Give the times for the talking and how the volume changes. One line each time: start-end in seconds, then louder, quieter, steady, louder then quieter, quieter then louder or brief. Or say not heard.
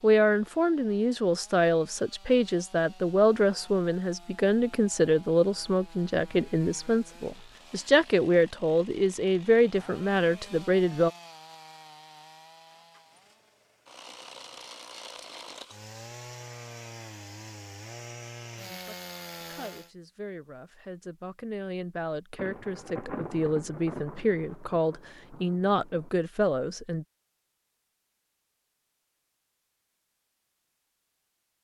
0.0-11.1 steady
18.6-27.1 louder.